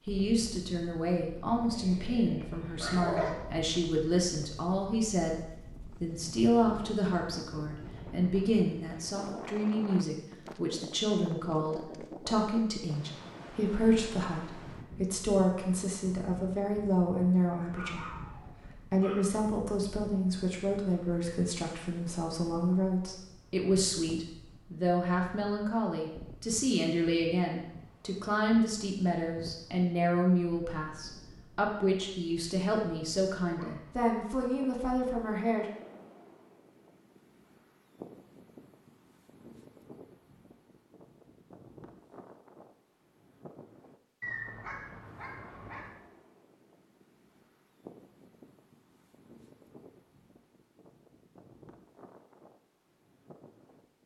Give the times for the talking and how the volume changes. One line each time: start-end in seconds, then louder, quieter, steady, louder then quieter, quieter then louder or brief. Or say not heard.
0.1-35.6 steady.